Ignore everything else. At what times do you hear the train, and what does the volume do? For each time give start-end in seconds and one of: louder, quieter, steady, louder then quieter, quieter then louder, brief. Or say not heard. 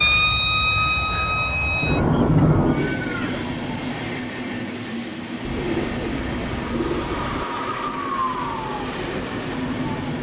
0.0-10.1 louder.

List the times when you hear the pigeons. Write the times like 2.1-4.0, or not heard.
2.0-3.5, 5.4-7.5.